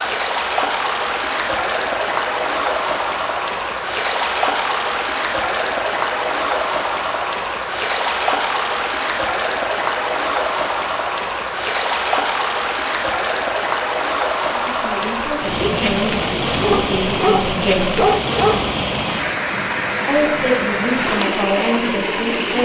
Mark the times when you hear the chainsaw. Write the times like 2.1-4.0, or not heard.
not heard.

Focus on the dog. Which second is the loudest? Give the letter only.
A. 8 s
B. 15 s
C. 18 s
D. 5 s
C.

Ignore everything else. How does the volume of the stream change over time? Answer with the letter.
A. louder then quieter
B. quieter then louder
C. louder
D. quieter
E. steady
E.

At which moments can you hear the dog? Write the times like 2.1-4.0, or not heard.
16.7-18.7.